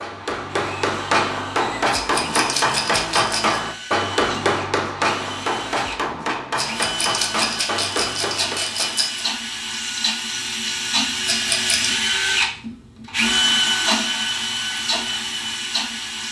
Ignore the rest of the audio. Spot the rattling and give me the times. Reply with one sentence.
You can hear the rattling from 1.9 to 3.6 s, from 6.5 to 9.2 s and from 11.2 to 11.9 s.